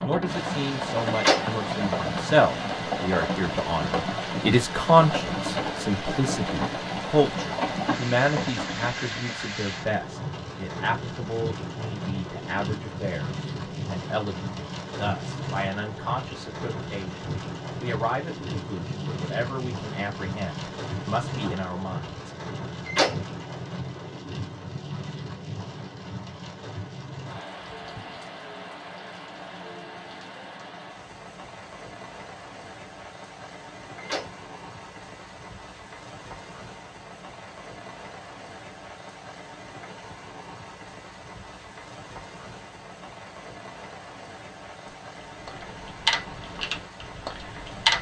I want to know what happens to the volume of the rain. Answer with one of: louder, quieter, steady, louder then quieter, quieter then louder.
quieter.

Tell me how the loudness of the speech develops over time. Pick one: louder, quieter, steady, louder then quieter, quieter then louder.
quieter.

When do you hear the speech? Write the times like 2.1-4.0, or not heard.
0.0-22.1.